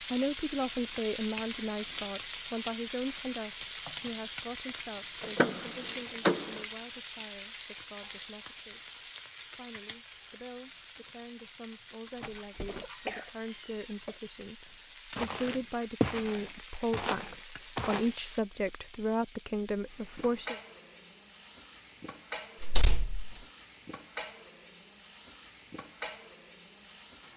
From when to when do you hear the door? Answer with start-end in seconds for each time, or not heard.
5.2-6.6, 12.1-13.9, 22.6-23.4.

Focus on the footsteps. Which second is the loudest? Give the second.
16 s.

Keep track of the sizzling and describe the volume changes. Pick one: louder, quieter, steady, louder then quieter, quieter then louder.
quieter.